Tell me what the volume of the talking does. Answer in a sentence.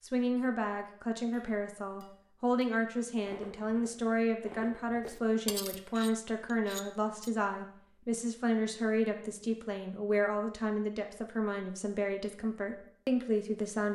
The loudness of the talking stays about the same.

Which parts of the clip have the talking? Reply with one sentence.
You can hear the talking from 0.0 to 13.9 s.